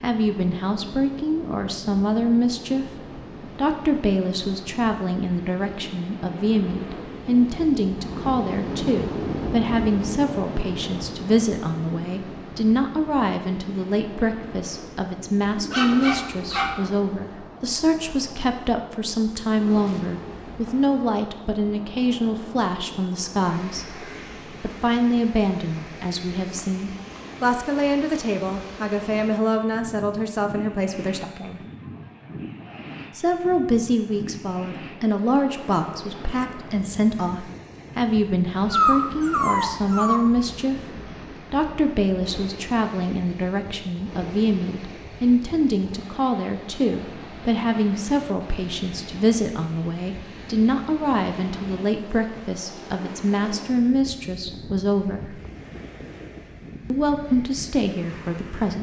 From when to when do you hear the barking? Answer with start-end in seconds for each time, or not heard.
15.6-16.8, 38.7-40.2.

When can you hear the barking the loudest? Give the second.
39 s.